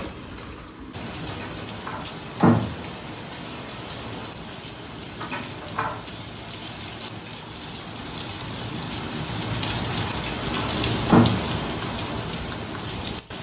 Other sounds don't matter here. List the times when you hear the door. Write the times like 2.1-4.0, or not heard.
1.4-2.8, 5.2-6.0, 9.9-11.5.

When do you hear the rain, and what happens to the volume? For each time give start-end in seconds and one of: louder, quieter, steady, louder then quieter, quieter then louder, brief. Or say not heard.
0.0-13.3 louder.